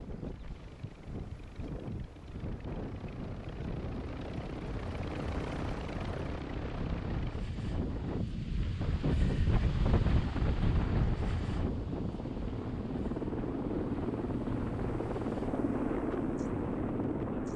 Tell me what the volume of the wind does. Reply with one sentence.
The volume of the wind goes up, then down.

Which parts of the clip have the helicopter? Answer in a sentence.
The helicopter can be heard from 0.0 to 8.2 s and from 9.7 to 17.5 s.